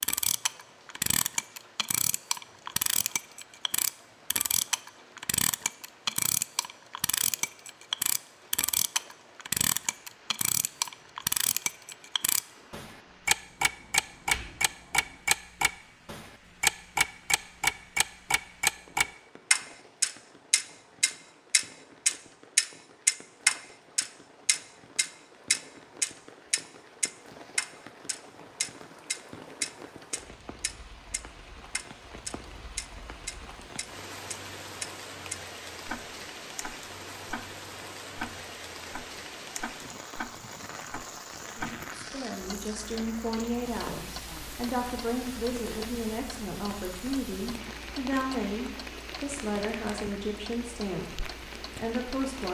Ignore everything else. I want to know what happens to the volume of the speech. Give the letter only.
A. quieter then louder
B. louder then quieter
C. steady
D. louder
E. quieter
C.